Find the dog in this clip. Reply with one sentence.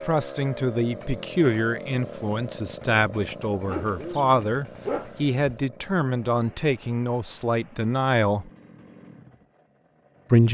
You can hear the dog from 3.6 to 5.5 s.